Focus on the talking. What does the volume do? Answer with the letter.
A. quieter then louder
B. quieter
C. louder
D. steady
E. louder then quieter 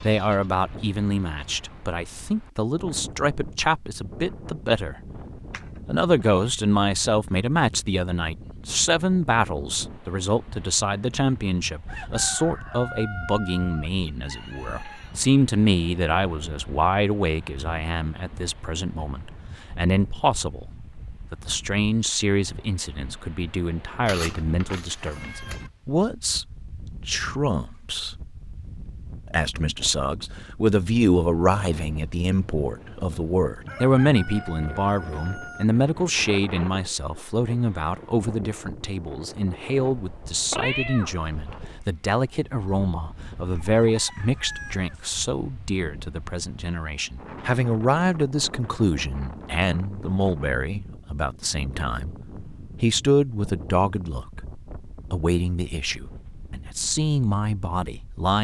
D.